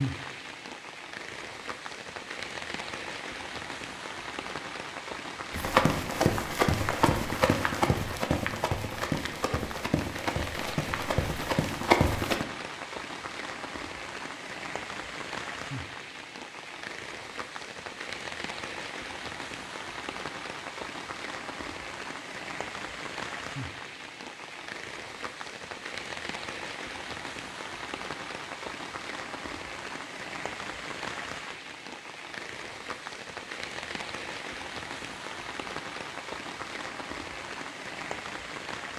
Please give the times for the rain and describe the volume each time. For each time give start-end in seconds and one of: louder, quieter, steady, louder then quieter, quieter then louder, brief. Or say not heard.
0.0-38.9 steady.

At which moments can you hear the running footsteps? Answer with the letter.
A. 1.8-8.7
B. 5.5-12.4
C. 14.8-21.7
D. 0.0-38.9
B.